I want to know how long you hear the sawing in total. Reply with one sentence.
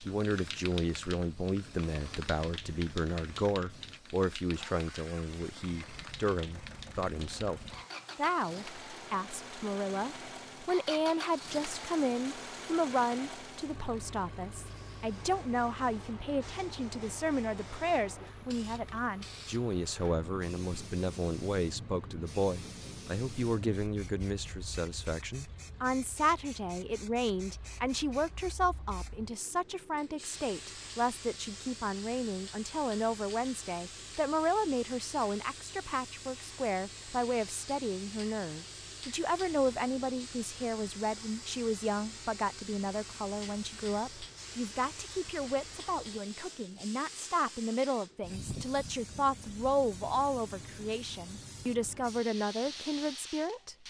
The sawing can't be heard in this clip.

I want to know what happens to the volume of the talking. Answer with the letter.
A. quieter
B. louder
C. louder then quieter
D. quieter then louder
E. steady
E.